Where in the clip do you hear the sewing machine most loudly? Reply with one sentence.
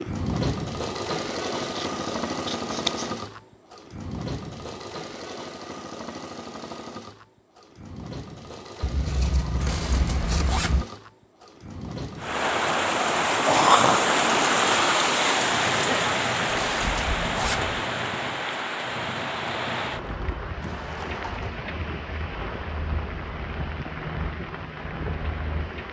The volume of the sewing machine peaks at 1 second.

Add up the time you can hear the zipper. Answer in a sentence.
The zipper can be heard for 3 seconds in total.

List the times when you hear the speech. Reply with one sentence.
The speech can't be heard in this clip.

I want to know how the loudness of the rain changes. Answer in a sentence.
The loudness of the rain goes down.